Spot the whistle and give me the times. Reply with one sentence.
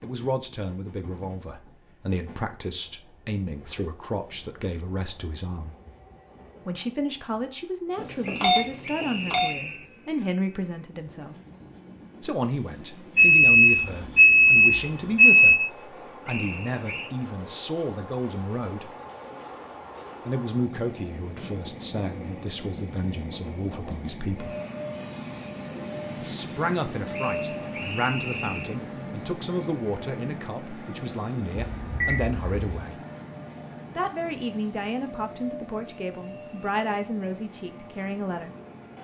You can hear the whistle from 8.2 to 9.9 s, from 16.2 to 17.1 s and from 27.1 to 28.8 s.